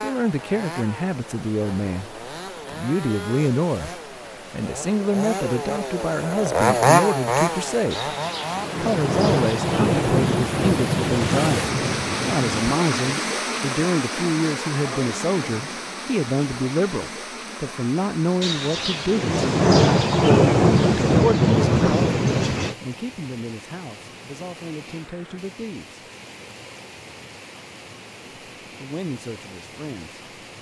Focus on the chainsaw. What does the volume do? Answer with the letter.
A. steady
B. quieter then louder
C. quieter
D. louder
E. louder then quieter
D.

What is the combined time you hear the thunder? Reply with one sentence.
The thunder can be heard for 9 seconds in total.